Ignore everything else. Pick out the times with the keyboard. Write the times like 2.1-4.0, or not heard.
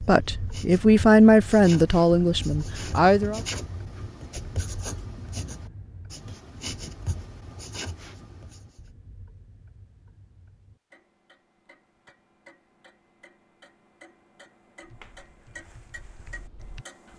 15.1-17.1.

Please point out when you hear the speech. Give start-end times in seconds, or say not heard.
0.1-3.4.